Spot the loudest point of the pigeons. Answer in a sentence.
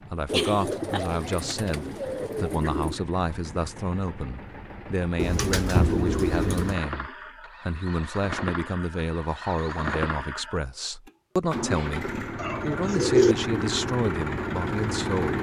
The volume of the pigeons peaks at 13 seconds.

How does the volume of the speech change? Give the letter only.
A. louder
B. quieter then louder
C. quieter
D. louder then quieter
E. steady
E.